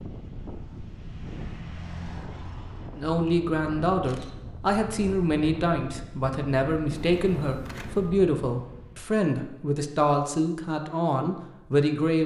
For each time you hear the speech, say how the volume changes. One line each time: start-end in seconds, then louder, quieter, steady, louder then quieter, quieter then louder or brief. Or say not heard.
3.0-12.2 steady.